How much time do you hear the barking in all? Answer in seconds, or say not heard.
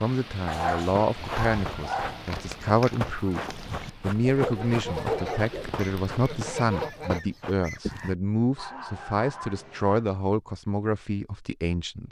5 s.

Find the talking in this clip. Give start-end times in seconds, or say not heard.
0.0-12.0.